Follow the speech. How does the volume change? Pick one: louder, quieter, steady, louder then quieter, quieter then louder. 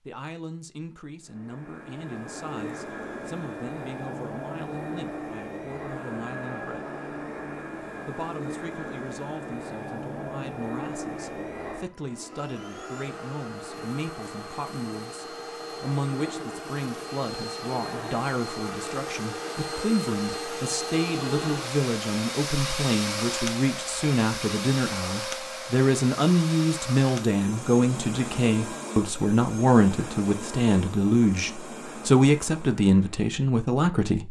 louder.